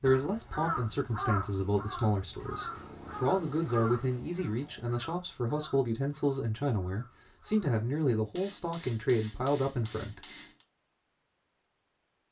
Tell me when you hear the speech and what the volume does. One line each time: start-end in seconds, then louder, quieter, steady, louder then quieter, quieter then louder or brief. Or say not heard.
0.0-10.2 steady.